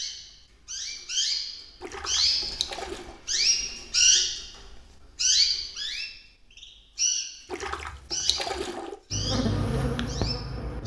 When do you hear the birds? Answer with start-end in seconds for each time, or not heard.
0.0-10.8.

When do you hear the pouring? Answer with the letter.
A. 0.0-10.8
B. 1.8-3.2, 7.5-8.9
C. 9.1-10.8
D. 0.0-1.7
B.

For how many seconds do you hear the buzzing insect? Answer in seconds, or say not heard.
2 s.